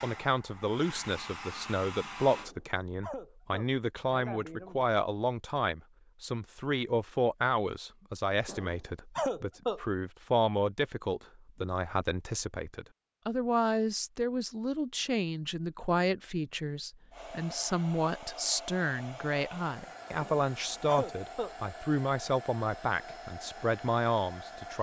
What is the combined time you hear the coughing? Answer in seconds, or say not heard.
5 s.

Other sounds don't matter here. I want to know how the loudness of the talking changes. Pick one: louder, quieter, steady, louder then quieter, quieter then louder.
steady.